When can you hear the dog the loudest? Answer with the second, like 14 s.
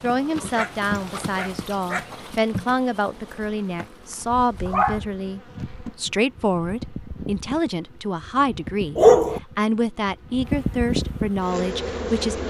9 s.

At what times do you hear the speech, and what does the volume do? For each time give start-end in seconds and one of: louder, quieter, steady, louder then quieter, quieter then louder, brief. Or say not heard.
0.0-12.4 steady.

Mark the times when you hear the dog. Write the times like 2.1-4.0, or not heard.
0.6-2.3, 4.7-6.1, 8.9-9.4.